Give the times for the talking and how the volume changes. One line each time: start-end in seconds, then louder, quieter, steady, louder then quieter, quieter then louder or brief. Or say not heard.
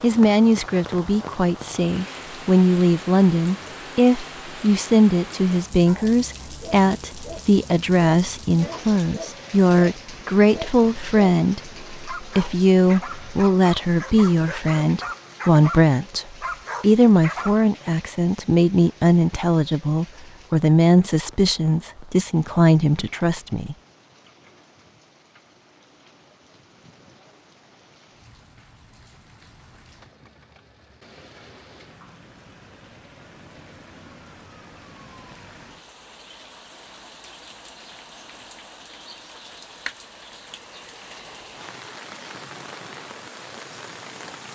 0.0-23.8 steady.